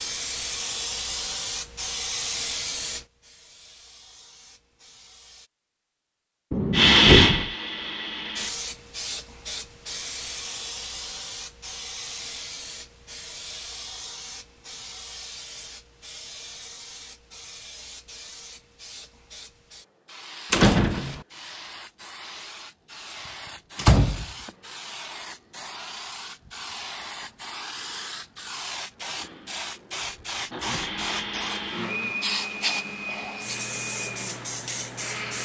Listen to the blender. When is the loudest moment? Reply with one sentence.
The volume of the blender peaks at 7 seconds.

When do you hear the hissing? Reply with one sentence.
You can hear the hissing from 0.0 to 5.5 s and from 8.3 to 35.4 s.